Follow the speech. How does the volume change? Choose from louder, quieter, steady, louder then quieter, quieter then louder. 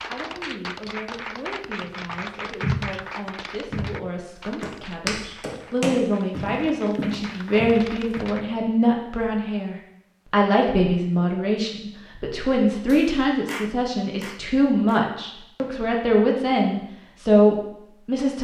louder.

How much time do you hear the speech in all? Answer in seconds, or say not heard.
18 s.